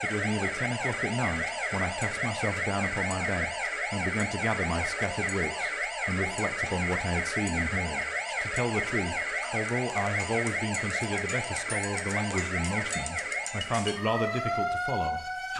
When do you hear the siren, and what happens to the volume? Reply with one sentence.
The siren can be heard from 0.0 to 15.5 s, at a steady volume.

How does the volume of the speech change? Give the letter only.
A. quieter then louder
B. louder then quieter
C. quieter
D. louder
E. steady
E.